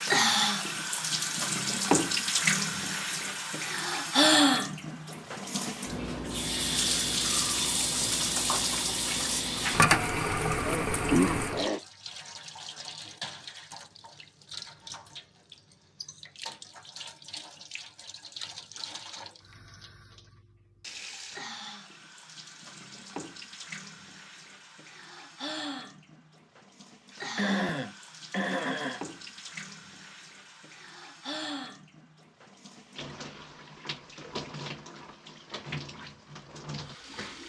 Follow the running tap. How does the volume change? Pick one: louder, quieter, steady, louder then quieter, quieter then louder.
quieter.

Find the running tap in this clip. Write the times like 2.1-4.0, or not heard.
0.0-37.4.